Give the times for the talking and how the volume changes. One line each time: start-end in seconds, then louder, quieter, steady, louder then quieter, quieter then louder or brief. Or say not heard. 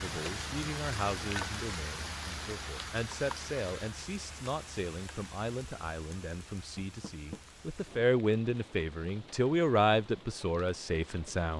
0.0-11.5 louder.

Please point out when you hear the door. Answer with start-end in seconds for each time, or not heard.
6.8-7.4.